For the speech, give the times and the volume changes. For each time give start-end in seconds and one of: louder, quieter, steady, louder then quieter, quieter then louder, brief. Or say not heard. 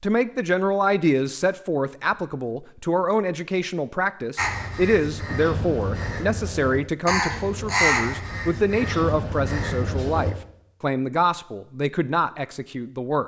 0.0-13.2 steady.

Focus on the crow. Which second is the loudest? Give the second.
8 s.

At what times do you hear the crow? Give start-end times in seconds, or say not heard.
4.3-10.3.